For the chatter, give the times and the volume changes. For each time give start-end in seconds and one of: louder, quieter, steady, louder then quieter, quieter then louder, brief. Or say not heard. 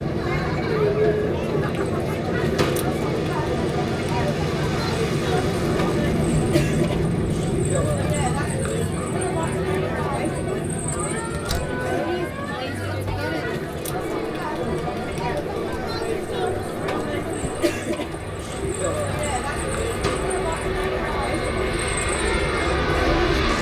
0.0-23.5 steady.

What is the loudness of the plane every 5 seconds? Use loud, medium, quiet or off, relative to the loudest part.
loud, loud, medium, medium, loud.